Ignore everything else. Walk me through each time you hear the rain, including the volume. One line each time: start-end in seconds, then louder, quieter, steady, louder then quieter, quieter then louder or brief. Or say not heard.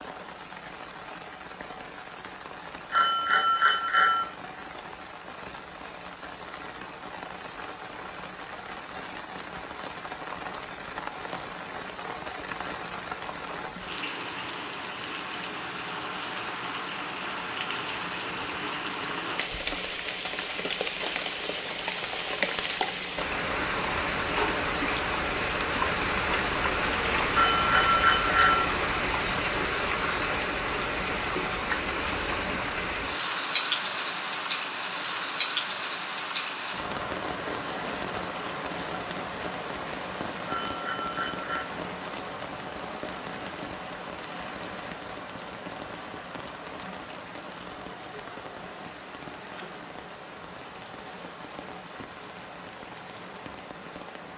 0.0-54.3 louder then quieter.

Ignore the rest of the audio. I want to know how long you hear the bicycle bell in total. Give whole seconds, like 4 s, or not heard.
4 s.